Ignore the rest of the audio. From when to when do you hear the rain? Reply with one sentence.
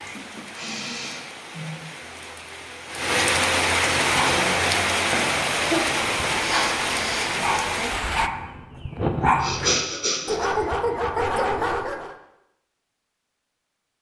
The rain can be heard from 0.0 to 8.3 s.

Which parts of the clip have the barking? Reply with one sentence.
The barking can be heard from 4.0 to 12.2 s.